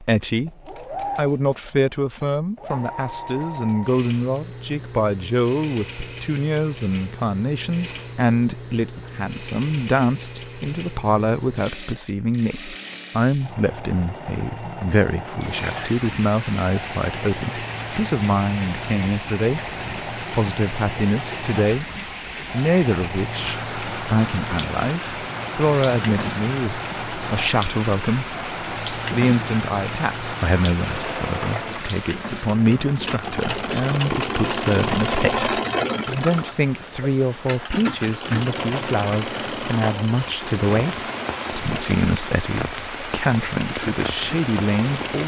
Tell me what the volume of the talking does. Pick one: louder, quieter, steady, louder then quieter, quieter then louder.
steady.